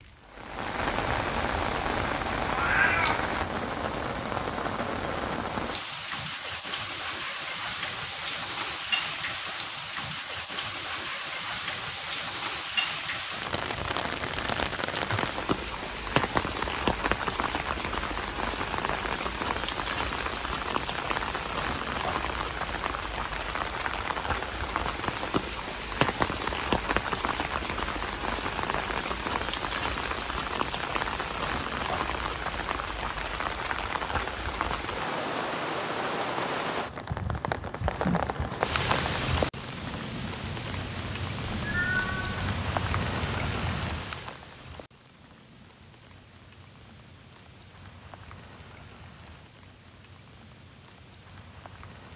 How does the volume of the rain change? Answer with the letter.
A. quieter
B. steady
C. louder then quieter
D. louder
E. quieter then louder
A.